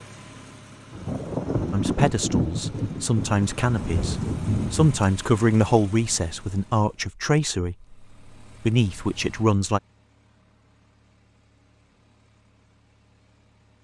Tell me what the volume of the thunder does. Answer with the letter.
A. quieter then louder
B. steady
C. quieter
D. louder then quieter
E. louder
A.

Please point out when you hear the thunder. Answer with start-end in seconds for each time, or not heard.
0.9-5.0.